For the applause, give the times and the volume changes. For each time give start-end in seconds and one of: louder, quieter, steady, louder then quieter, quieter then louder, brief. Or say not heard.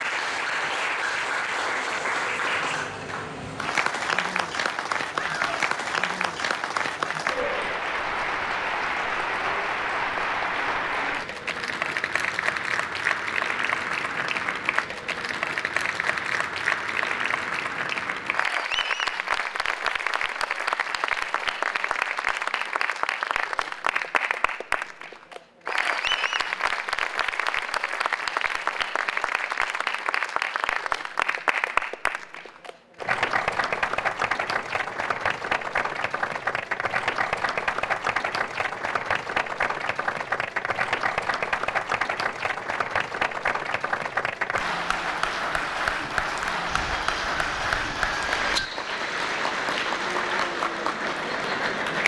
0.0-52.0 steady.